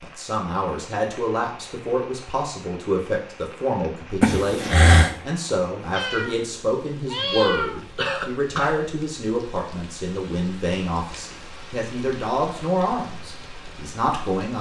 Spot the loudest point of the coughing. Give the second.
5 s.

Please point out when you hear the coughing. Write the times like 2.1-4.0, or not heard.
4.2-5.2, 7.8-8.9.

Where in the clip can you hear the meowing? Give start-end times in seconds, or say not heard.
6.0-7.8.